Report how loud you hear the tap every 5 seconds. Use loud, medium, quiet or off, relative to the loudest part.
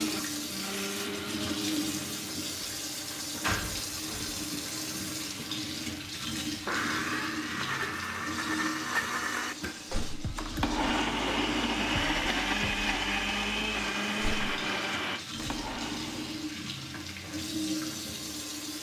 loud, loud, medium, loud.